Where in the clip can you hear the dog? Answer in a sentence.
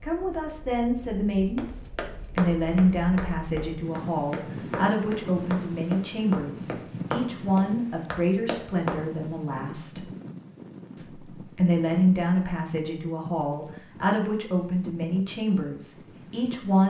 You can't hear the dog here.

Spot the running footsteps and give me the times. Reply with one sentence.
You can hear the running footsteps from 1.6 to 9.0 s.